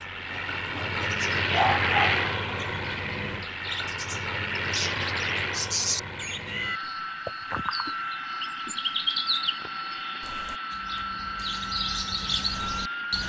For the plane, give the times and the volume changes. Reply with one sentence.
You can hear the plane from 0.0 to 13.2 s, getting quieter.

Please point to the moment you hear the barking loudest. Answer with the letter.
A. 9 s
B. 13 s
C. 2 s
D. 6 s
C.